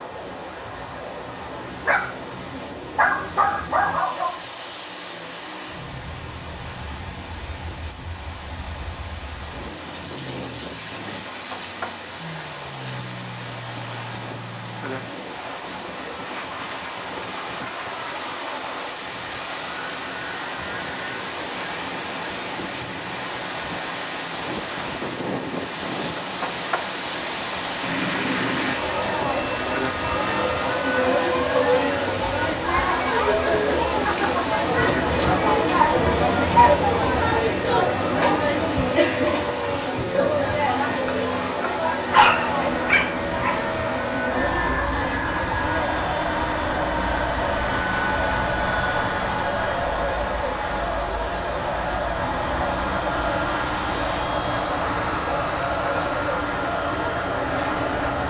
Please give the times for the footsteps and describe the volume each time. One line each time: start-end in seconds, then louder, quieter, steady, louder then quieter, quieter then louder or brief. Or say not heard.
not heard.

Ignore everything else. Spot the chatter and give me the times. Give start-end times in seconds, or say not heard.
28.7-58.2.